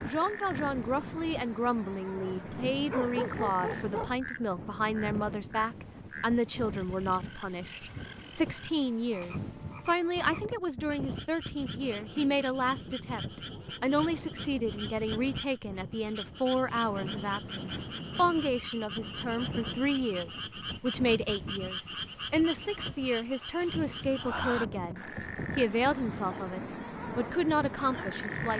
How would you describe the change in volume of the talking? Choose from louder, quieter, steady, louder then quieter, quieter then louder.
steady.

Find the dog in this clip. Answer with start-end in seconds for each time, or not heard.
2.9-4.2.